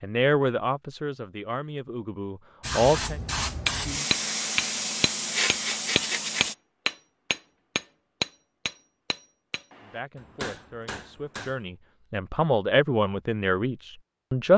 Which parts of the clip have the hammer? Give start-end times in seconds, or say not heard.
3.6-11.6.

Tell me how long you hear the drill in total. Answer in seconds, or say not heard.
not heard.